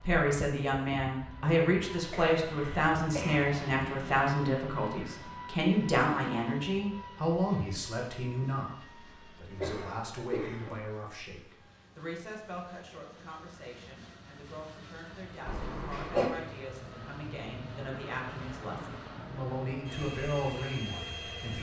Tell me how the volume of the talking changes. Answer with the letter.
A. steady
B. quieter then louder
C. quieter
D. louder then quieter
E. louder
B.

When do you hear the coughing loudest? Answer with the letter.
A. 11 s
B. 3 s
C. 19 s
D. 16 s
D.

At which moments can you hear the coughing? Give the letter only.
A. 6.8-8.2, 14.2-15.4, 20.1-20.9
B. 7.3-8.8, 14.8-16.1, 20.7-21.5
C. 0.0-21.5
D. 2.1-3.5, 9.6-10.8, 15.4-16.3
D.